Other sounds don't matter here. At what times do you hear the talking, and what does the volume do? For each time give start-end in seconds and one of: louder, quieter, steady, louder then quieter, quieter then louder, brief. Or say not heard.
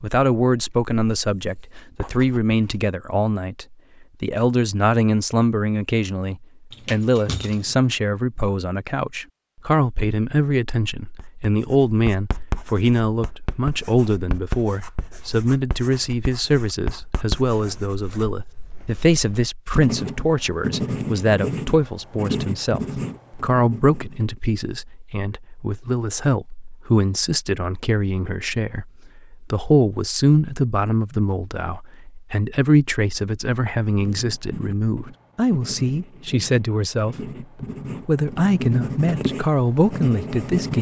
0.0-37.4 steady
38.0-40.7 brief.